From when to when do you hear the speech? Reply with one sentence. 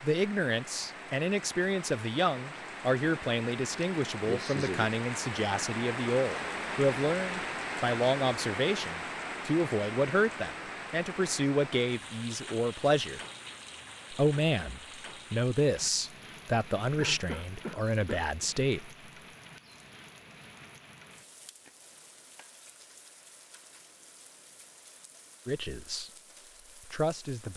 You can hear the speech from 0.0 to 13.2 s, from 14.1 to 18.9 s and from 25.4 to 27.5 s.